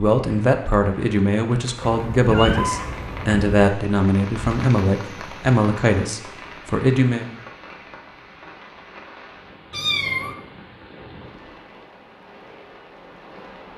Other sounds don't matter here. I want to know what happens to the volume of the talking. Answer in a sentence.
The loudness of the talking stays about the same.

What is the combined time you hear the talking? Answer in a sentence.
The talking can be heard for 7 seconds in total.